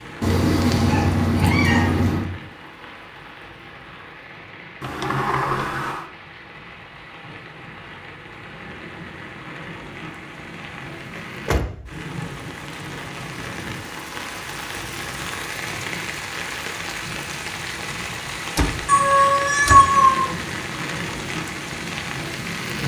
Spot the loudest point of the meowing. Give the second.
20 s.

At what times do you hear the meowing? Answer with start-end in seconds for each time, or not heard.
0.2-2.2, 18.9-20.2.